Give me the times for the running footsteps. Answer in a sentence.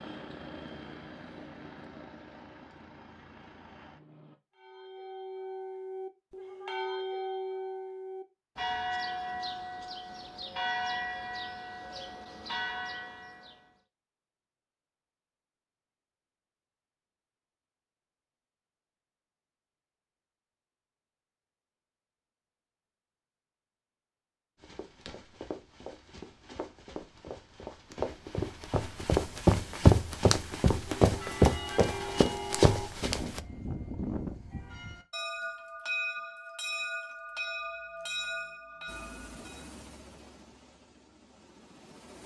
The running footsteps can be heard from 24.6 to 33.4 s.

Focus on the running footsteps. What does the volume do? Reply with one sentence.
The loudness of the running footsteps goes up.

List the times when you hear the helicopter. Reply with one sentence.
You can hear the helicopter from 0.0 to 4.4 s and from 38.9 to 42.2 s.